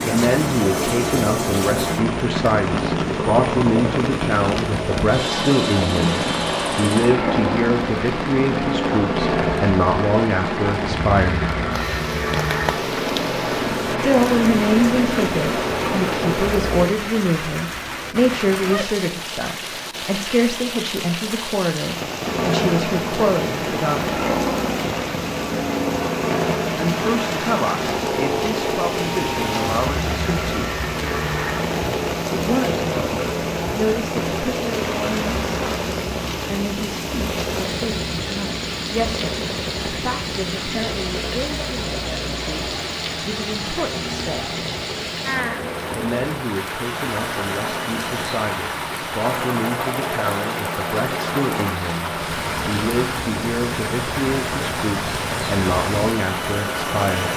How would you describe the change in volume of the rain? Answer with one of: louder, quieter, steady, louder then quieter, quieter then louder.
steady.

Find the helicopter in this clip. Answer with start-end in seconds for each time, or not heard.
0.0-16.9, 22.2-57.3.